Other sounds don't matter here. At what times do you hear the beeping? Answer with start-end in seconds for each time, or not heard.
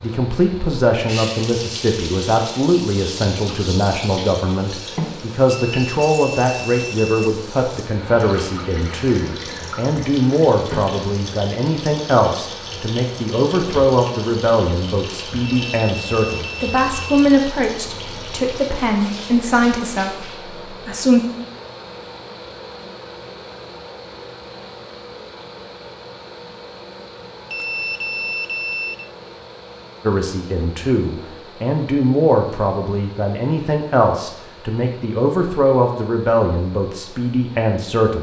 5.7-7.3, 15.4-17.2, 27.5-29.1.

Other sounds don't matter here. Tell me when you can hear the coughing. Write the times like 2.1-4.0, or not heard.
not heard.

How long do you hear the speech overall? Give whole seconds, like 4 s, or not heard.
29 s.